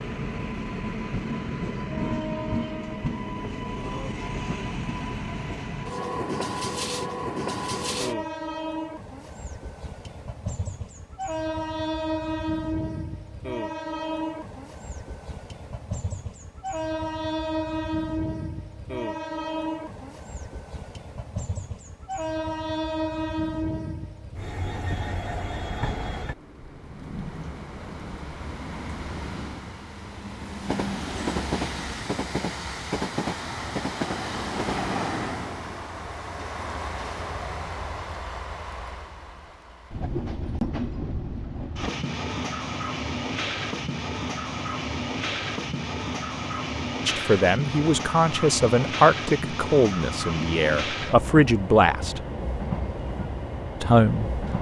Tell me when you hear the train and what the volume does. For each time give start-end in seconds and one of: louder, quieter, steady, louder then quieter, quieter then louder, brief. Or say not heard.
0.0-54.5 steady.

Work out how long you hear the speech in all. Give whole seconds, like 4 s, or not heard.
6 s.